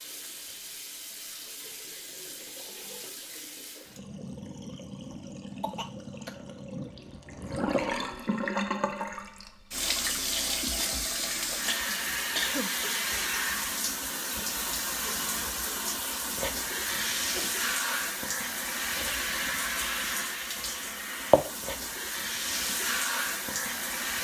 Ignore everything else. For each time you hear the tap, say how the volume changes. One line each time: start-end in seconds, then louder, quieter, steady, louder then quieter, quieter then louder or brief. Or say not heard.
0.0-24.1 louder.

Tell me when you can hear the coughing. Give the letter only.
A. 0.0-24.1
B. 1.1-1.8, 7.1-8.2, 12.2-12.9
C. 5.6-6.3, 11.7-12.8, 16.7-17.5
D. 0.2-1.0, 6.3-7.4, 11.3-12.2
C.